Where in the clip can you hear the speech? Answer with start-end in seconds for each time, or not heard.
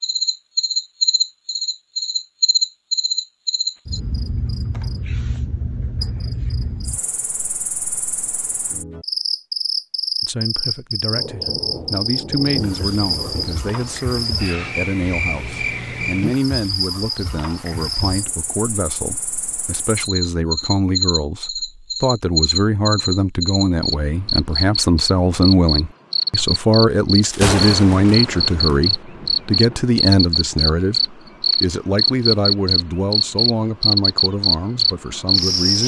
10.2-35.8.